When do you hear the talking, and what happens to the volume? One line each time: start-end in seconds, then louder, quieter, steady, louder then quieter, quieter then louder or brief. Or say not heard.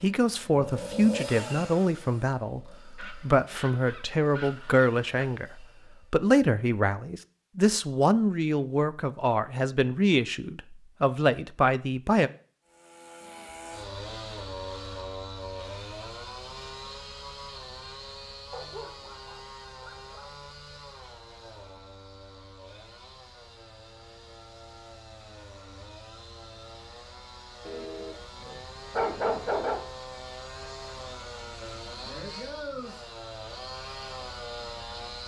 0.0-12.3 steady.